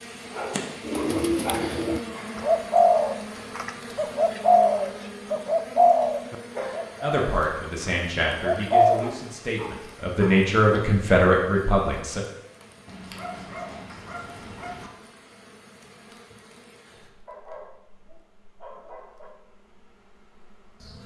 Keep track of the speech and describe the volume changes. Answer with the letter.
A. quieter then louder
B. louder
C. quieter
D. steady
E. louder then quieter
A.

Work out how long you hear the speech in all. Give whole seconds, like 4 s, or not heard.
5 s.